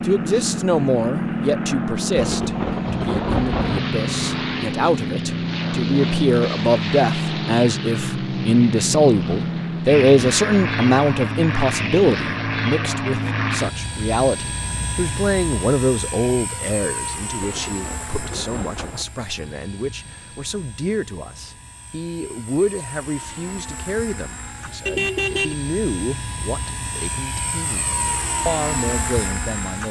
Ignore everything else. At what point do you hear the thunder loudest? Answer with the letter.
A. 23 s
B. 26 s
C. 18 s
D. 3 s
D.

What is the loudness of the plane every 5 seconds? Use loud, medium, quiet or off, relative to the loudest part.
loud, loud, loud, medium, quiet, medium.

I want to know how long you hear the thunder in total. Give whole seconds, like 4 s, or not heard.
3 s.